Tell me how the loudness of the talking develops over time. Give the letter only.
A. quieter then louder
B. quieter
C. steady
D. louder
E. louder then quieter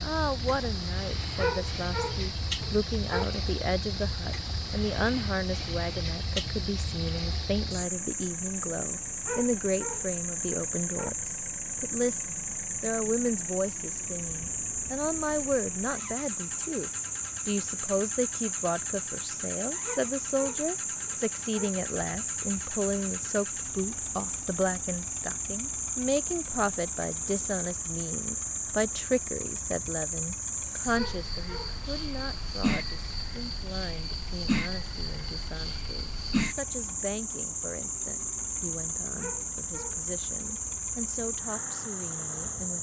B.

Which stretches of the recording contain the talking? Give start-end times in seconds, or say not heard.
0.0-42.7.